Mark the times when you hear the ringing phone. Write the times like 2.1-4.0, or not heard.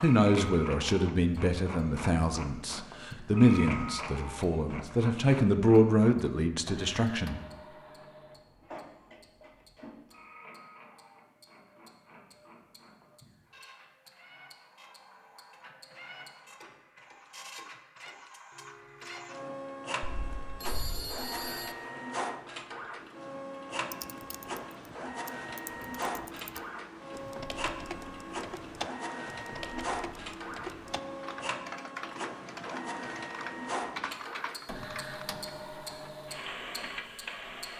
20.0-21.8.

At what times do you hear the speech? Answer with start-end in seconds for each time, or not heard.
0.0-7.4.